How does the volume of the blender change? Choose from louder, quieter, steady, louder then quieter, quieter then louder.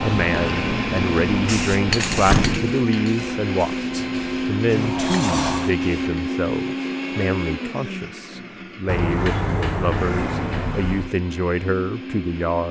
quieter.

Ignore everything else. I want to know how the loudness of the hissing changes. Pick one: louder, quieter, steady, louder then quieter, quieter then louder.
quieter.